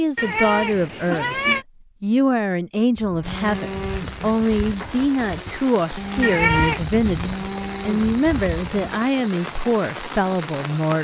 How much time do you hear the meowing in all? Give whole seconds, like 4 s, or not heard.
2 s.